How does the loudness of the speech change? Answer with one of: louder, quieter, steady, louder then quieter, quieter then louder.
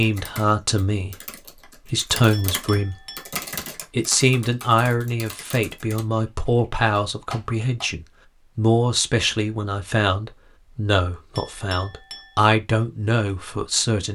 steady.